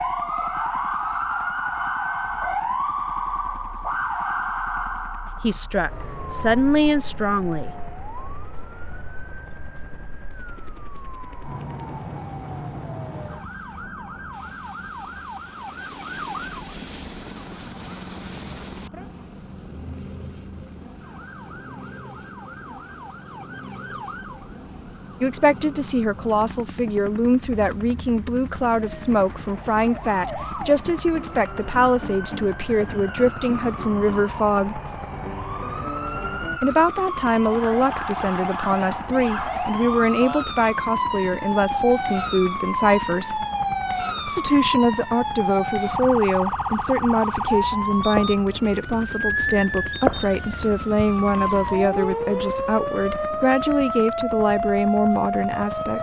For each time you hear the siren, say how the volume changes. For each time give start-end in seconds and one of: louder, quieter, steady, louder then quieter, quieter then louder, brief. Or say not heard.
0.0-55.9 quieter then louder.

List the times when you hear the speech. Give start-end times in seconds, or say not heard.
5.3-7.8, 25.2-34.8, 36.6-43.5, 44.2-55.9.